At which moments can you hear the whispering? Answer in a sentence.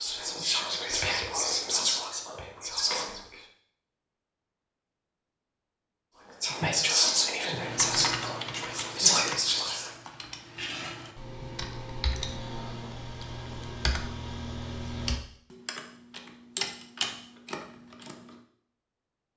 The whispering can be heard from 0.0 to 3.2 s and from 6.4 to 9.9 s.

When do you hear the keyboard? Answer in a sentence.
You can hear the keyboard from 7.5 to 18.4 s.